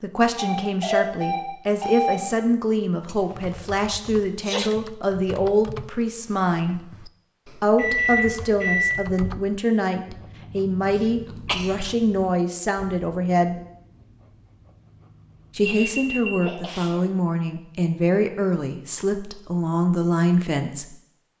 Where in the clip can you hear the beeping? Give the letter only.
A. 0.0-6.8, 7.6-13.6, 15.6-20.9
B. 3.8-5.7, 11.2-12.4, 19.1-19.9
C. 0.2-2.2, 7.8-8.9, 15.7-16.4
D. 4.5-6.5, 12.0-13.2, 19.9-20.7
C.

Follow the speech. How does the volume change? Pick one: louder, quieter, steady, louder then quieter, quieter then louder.
steady.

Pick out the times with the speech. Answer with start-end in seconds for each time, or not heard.
0.0-6.8, 7.6-13.6, 15.6-20.9.